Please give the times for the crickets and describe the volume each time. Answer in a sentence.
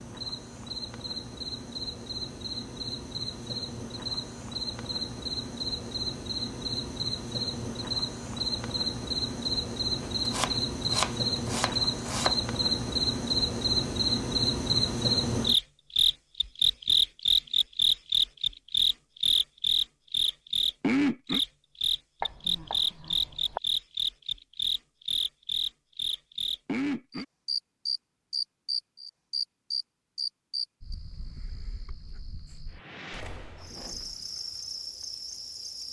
The crickets can be heard from 0.0 to 35.8 s, getting louder then quieter.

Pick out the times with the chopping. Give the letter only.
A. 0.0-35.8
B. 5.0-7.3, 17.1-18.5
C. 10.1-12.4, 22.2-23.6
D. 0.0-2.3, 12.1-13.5
C.